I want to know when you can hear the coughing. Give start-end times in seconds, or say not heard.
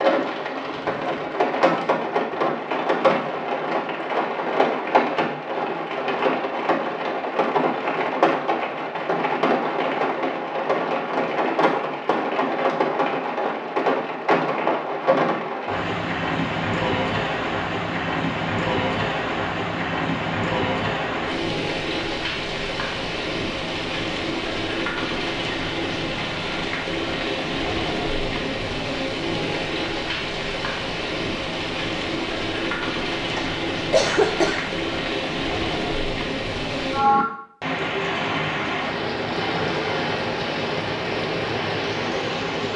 33.4-34.8.